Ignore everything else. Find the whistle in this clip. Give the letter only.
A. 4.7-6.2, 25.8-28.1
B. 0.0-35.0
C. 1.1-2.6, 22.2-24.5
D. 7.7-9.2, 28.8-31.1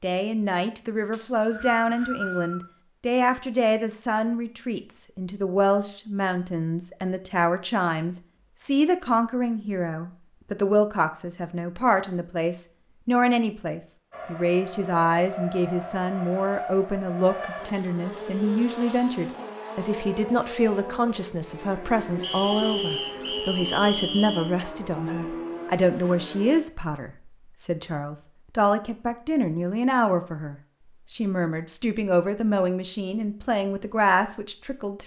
C.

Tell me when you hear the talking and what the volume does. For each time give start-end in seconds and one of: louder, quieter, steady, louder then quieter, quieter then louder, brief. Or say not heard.
0.0-35.0 steady.